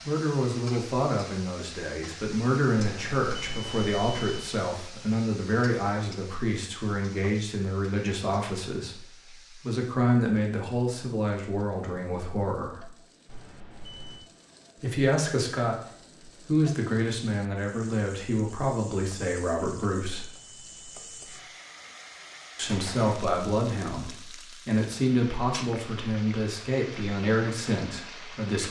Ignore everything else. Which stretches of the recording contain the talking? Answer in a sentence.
The talking can be heard from 0.0 to 12.9 s, from 14.8 to 20.3 s and from 22.6 to 28.6 s.